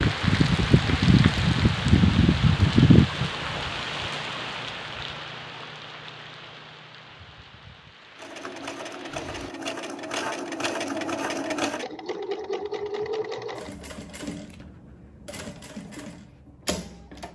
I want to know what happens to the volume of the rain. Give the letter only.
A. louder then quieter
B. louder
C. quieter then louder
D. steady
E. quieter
E.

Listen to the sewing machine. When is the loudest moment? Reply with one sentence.
The volume of the sewing machine peaks at 11 seconds.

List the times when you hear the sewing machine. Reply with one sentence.
You can hear the sewing machine from 8.2 to 17.3 s.